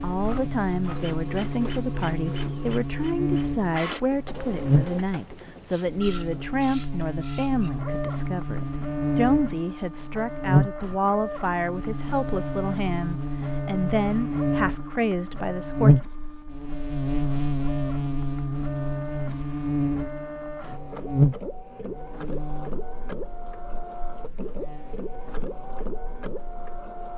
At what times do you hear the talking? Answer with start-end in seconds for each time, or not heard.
0.0-15.9.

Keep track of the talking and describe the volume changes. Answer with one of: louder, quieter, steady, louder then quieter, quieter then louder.
steady.